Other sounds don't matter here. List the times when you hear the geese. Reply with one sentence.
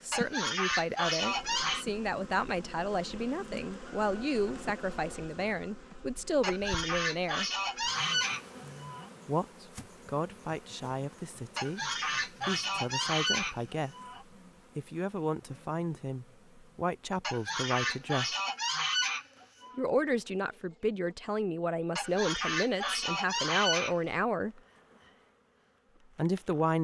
The geese can be heard from 0.1 to 1.9 s, from 6.4 to 9.1 s, from 11.6 to 14.2 s, from 17.2 to 19.8 s and from 21.9 to 24.1 s.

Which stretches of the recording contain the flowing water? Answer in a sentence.
The flowing water can't be heard in this clip.